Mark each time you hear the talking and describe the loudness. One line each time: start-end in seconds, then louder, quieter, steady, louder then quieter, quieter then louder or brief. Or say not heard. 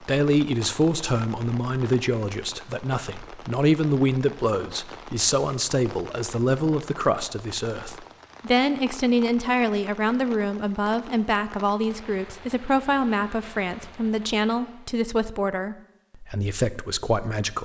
0.0-17.6 steady.